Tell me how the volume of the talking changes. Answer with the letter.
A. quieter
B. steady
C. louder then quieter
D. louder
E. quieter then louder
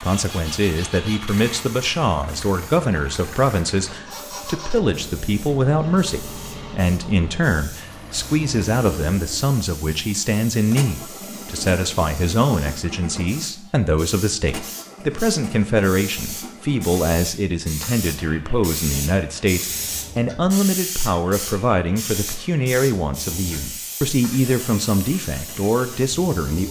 B.